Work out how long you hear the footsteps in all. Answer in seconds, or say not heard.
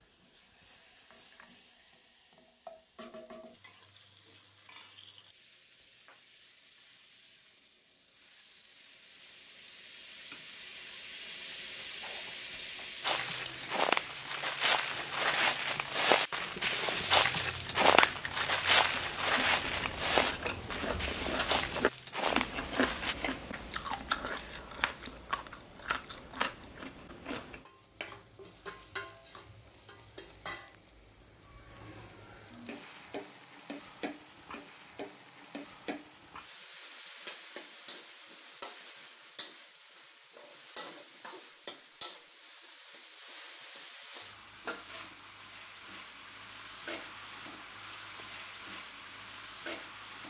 10 s.